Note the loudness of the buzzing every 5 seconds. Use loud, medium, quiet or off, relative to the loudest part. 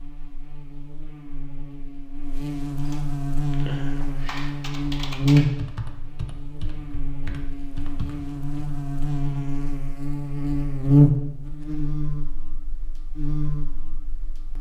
medium, loud, loud.